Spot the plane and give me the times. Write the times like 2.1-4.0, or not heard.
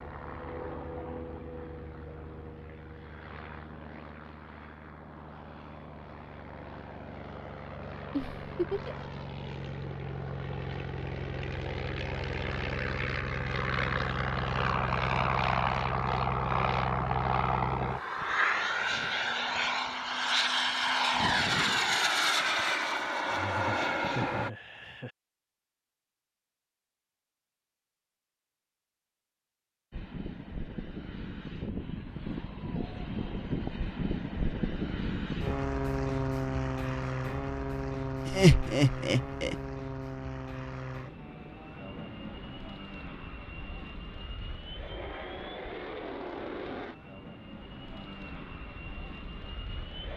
0.0-24.5, 29.9-50.1.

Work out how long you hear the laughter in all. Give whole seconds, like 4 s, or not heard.
4 s.